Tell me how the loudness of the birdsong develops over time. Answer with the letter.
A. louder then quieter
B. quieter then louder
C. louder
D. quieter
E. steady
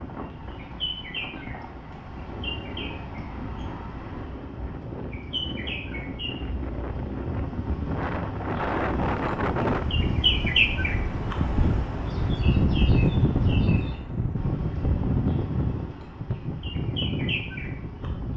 A.